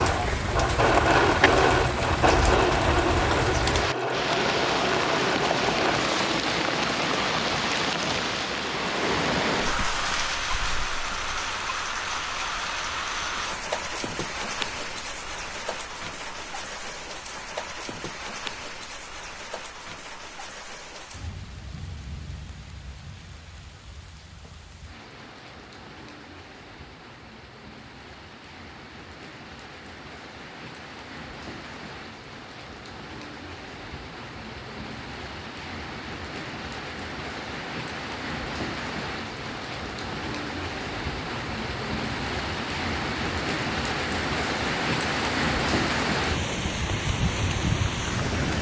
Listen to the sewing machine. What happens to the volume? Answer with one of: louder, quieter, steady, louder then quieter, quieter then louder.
quieter.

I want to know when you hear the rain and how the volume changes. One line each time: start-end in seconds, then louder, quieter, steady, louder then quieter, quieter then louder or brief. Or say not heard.
0.0-48.5 quieter then louder.